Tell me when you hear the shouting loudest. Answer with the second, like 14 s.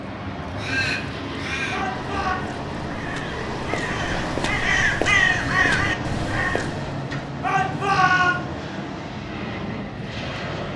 8 s.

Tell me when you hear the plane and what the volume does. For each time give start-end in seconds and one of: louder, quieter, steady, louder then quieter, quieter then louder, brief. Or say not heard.
0.0-10.7 steady.